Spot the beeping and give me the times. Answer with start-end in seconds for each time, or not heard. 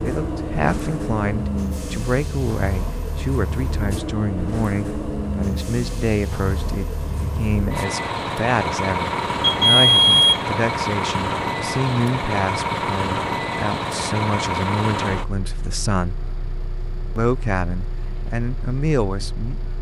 9.4-10.4.